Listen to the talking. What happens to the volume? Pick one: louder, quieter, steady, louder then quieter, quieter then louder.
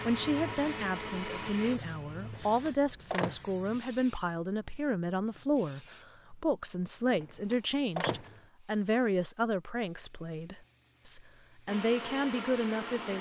steady.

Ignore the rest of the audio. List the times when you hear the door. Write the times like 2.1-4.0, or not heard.
2.2-3.4, 7.1-8.4.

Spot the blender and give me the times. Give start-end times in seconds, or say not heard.
0.0-2.5, 11.7-13.1.